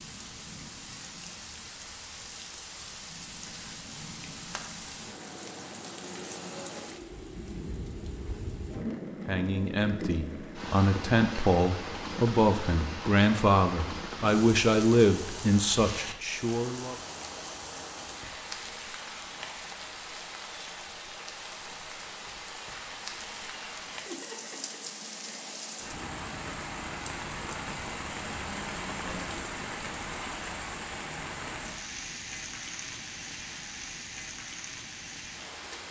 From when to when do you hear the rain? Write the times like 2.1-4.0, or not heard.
0.0-35.8.